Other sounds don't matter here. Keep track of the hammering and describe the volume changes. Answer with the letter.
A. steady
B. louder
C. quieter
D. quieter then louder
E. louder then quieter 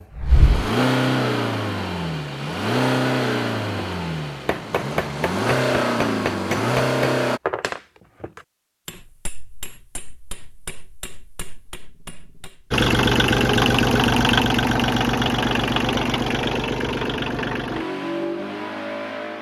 C.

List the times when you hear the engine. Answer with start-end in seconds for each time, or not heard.
0.0-7.4, 12.7-19.3.